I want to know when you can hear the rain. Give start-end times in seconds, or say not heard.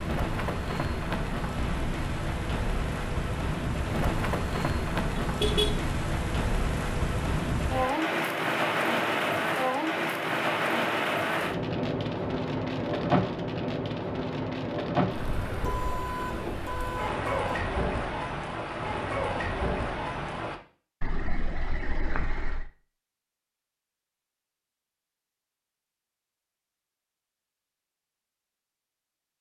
0.0-20.6.